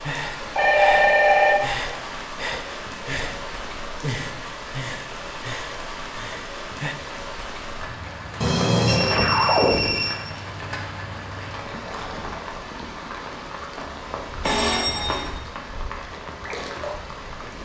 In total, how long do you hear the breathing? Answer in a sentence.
The breathing can be heard for 7 seconds in total.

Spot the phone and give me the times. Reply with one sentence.
You can hear the phone from 0.6 to 1.9 s, from 8.4 to 10.2 s and from 14.4 to 15.3 s.